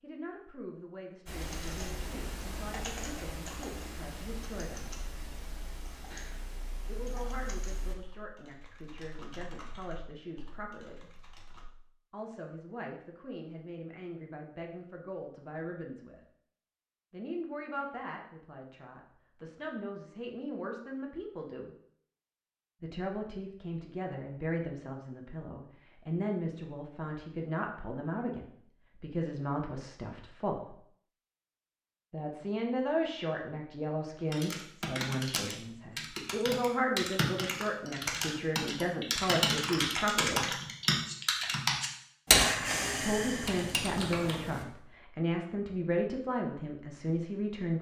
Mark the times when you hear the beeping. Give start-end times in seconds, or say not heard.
not heard.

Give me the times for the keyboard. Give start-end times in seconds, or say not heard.
1.2-11.7, 34.3-44.6.